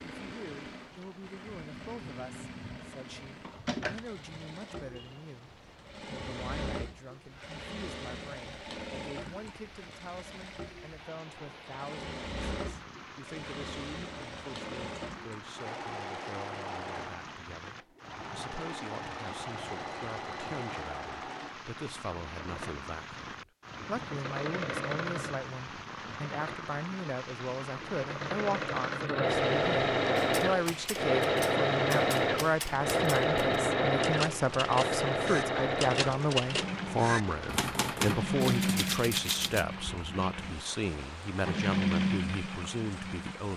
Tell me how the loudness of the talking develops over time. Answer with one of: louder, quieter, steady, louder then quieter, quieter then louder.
louder.